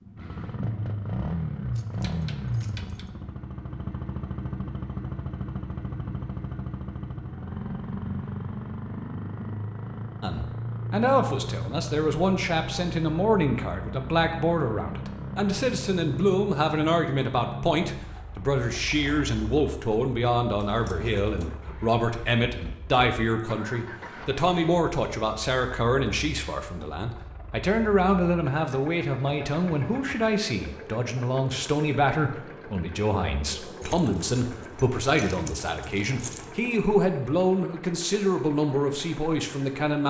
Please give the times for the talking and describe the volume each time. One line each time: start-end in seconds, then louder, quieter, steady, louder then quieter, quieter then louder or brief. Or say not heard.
10.2-40.0 steady.